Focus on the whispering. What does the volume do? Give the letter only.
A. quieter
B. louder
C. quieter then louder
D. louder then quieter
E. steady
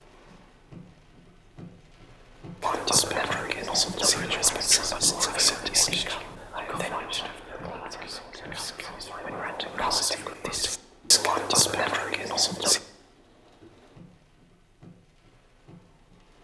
C.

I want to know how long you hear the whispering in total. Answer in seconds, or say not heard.
10 s.